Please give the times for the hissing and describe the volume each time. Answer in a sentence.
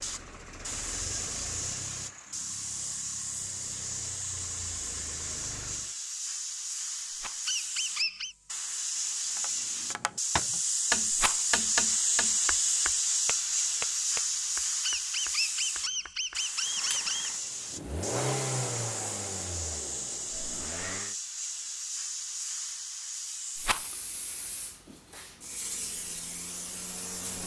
You can hear the hissing from 0.0 to 27.4 s, getting louder then quieter.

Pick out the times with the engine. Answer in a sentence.
You can hear the engine from 0.0 to 6.0 s, from 16.6 to 21.1 s and from 25.6 to 27.4 s.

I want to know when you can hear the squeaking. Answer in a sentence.
You can hear the squeaking from 7.5 to 8.3 s and from 14.8 to 17.3 s.